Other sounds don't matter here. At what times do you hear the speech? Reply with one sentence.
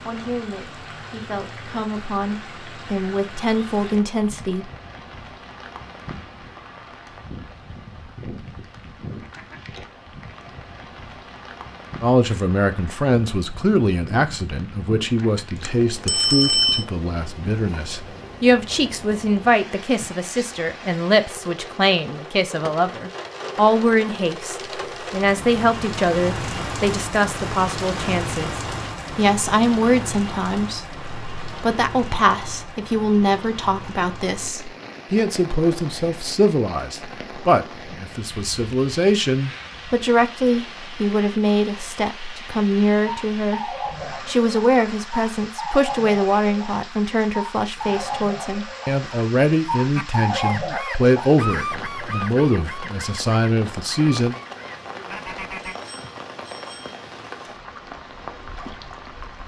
You can hear the speech from 0.1 to 4.7 s, from 12.0 to 43.6 s and from 44.2 to 54.4 s.